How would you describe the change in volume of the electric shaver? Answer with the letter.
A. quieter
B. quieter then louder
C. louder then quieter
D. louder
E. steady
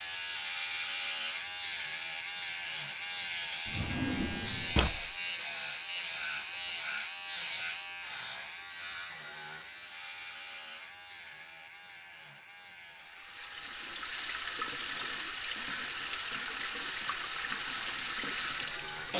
B.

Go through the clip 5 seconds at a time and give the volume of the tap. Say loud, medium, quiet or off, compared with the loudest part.
off, off, loud, loud.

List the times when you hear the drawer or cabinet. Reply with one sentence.
The drawer or cabinet can be heard from 3.6 to 5.1 s.